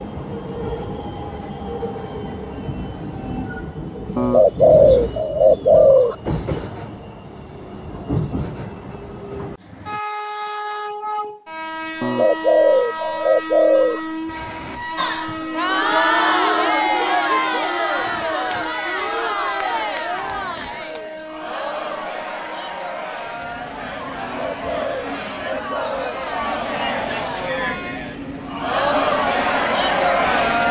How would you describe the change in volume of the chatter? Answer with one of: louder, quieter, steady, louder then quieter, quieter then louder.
quieter then louder.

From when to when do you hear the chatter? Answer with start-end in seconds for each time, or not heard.
14.9-30.6.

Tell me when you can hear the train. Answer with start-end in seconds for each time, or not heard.
0.0-30.6.